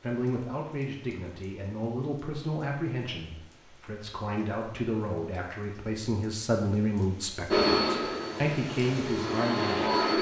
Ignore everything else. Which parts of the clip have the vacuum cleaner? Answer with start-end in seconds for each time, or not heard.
7.5-10.1.